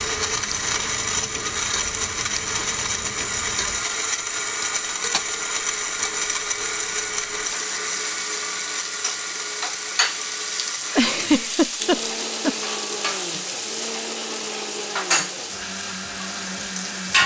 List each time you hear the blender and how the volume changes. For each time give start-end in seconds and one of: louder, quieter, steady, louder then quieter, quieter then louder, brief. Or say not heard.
0.0-17.2 quieter.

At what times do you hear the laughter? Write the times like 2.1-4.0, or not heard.
10.9-12.8.